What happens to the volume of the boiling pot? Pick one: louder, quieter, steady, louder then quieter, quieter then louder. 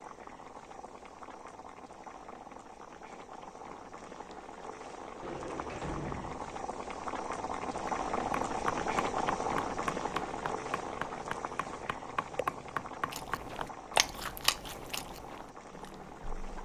louder then quieter.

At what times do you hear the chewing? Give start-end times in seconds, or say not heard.
13.1-16.5.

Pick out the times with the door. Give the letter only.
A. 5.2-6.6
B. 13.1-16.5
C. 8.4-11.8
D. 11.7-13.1
A.